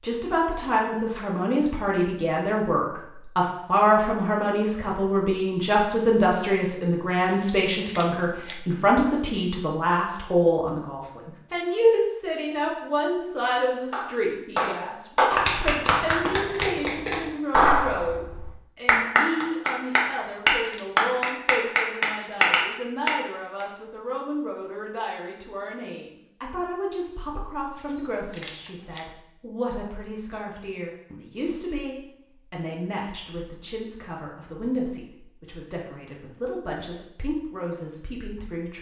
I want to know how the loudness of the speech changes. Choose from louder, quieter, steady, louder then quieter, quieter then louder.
quieter.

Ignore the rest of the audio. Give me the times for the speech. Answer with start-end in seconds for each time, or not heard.
0.0-38.7.